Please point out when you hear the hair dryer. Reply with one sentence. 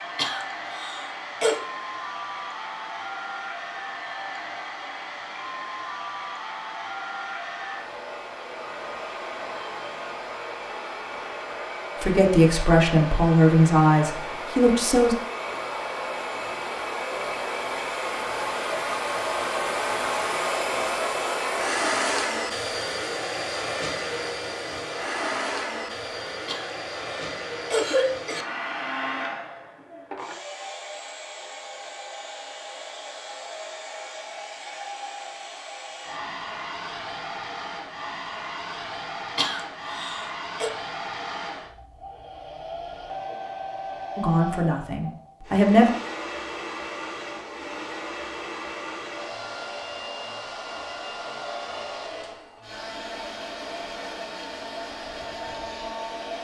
The hair dryer can be heard from 0.0 to 56.3 s.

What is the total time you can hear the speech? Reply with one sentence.
The speech can be heard for 5 seconds in total.